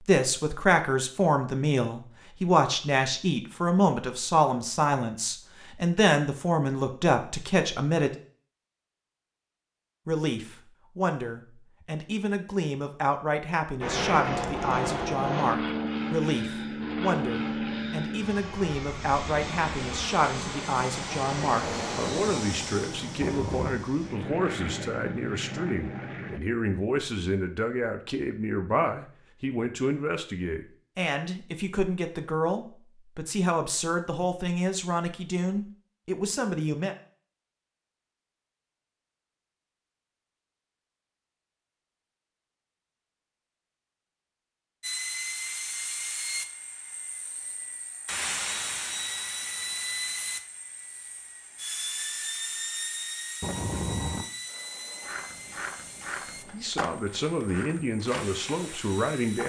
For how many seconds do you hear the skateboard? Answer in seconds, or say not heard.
5 s.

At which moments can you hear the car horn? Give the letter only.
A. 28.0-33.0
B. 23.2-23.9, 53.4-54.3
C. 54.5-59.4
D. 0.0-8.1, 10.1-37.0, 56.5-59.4
B.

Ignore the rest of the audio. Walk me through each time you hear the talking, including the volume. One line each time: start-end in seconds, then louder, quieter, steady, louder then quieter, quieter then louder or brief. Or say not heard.
0.0-8.1 steady
10.1-37.0 steady
56.5-59.4 brief.